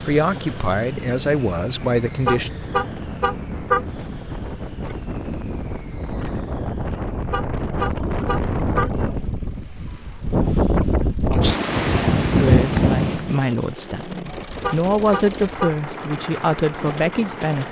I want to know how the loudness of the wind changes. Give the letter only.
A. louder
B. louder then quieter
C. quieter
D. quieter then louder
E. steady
B.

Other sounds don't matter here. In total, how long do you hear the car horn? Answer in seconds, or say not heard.
5 s.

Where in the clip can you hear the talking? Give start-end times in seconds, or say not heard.
0.0-2.5, 12.3-17.6.